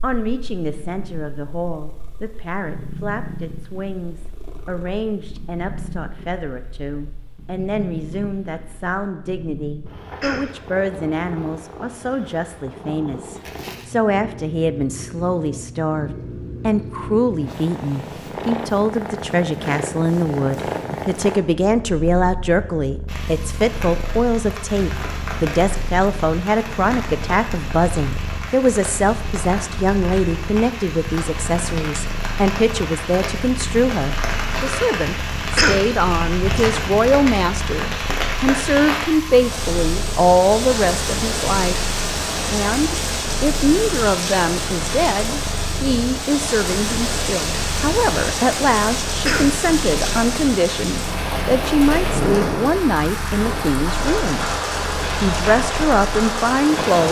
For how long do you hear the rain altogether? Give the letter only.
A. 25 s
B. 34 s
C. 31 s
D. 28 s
B.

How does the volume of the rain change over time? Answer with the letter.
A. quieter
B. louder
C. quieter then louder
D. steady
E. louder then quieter
B.